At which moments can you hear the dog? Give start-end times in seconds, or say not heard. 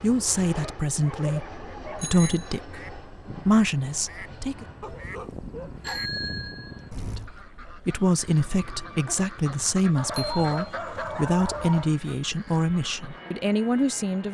0.5-2.1, 4.8-6.1, 9.9-11.9.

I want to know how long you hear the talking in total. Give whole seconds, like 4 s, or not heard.
12 s.